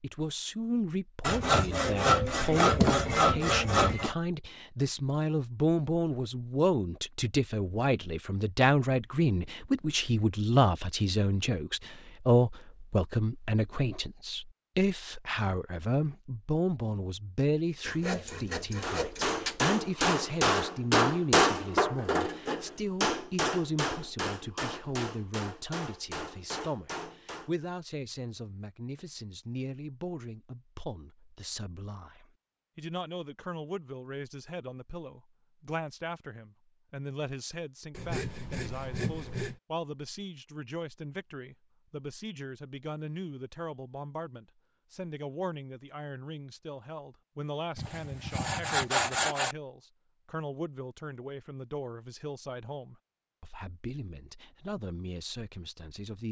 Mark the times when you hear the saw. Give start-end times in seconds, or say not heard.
1.2-4.2, 17.9-19.6, 37.9-39.6, 47.8-49.5.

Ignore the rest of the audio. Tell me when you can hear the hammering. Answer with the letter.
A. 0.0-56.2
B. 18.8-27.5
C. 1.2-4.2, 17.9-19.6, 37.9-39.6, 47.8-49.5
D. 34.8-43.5
B.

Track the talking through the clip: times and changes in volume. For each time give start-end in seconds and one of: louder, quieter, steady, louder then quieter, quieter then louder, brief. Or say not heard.
0.0-56.2 quieter.